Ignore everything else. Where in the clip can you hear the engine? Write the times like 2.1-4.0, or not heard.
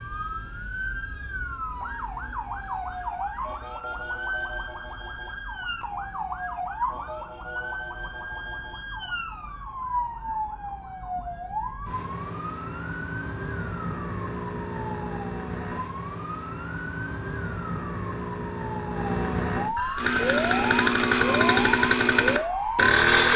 19.9-23.3.